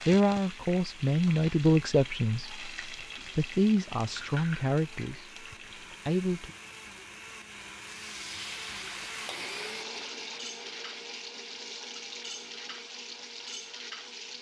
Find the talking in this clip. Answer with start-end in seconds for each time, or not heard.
0.1-2.5, 3.4-5.3, 6.0-6.5.